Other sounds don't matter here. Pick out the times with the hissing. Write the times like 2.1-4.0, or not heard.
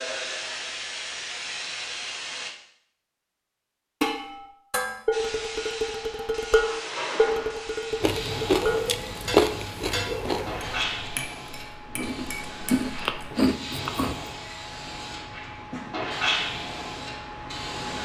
0.0-2.5, 5.1-18.0.